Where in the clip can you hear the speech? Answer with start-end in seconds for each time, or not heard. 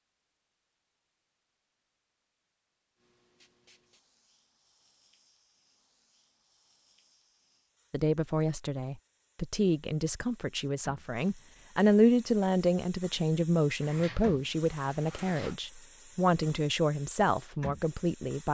7.9-18.4.